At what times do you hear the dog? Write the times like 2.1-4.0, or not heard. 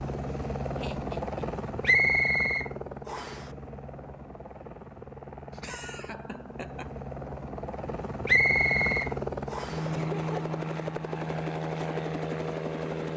not heard.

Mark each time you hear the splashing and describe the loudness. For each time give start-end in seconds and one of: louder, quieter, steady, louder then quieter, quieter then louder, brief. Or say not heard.
not heard.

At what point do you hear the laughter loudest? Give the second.
10 s.